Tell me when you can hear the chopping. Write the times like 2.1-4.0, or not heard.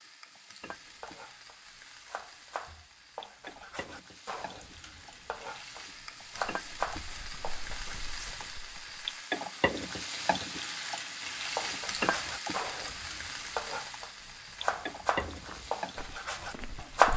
0.6-8.0, 11.6-17.1.